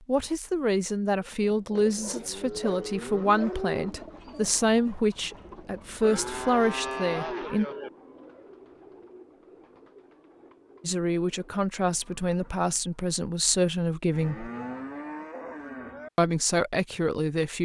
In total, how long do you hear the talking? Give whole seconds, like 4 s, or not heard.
13 s.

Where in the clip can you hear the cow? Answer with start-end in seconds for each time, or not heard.
1.8-4.0, 6.0-7.9, 14.1-16.1.